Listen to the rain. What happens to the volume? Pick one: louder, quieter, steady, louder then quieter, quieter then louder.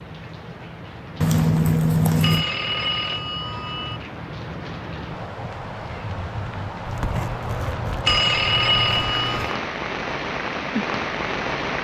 louder.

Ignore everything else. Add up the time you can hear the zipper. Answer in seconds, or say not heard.
4 s.